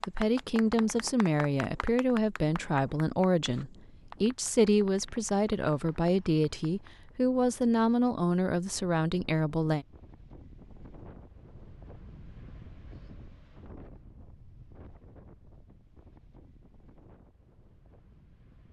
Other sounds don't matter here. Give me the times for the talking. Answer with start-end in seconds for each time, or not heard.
0.1-9.8.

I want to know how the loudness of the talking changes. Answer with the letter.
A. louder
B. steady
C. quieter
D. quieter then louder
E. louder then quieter
B.